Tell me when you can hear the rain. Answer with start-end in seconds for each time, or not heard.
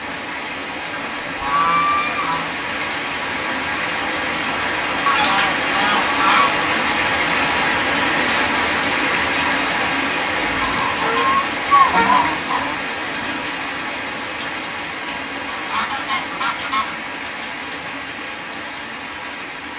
0.0-19.7.